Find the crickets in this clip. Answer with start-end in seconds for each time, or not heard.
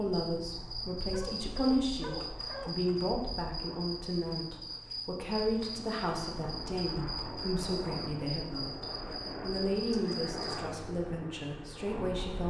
0.0-10.7.